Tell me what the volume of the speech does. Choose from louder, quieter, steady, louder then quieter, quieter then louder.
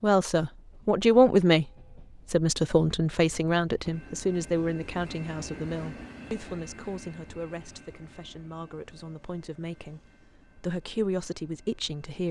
quieter then louder.